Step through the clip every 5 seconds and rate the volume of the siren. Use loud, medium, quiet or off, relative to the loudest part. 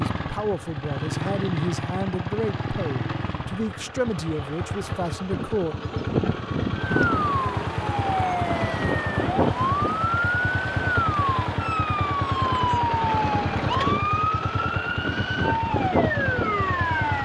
off, loud, loud, loud.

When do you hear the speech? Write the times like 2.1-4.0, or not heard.
0.0-5.8.